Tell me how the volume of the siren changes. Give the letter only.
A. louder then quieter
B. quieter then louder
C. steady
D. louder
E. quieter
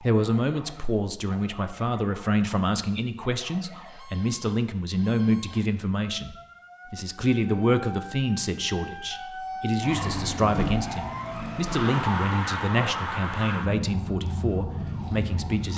D.